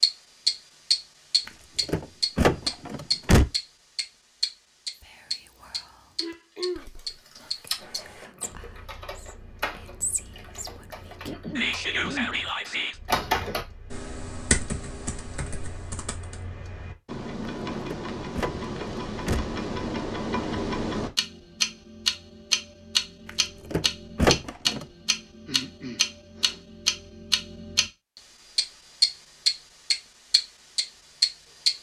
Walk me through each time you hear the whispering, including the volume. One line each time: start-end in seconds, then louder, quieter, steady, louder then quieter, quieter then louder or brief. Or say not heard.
5.0-12.9 louder.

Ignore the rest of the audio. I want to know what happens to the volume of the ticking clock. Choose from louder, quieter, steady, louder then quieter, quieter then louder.
quieter then louder.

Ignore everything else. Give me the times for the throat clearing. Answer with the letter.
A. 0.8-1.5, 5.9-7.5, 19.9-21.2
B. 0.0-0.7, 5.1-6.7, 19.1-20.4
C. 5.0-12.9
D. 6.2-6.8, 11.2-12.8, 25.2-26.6
D.